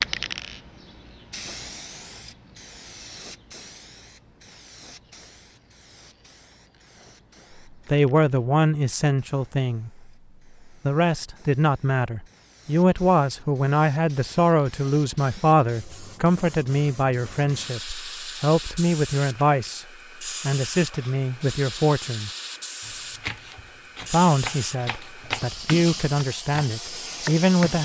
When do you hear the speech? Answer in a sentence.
You can hear the speech from 7.8 to 10.1 s, from 10.8 to 22.3 s and from 24.1 to 27.8 s.